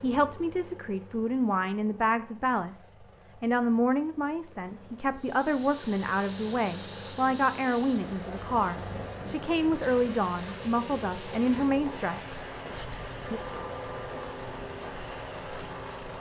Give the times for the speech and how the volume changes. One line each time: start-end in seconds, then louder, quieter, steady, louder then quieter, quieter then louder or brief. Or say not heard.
0.0-13.4 steady.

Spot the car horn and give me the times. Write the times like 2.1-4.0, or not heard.
12.7-14.7.